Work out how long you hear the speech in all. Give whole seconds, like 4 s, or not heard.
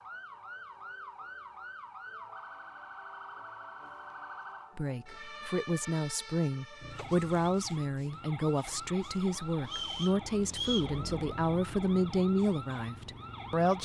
9 s.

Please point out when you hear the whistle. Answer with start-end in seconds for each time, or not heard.
9.7-10.9.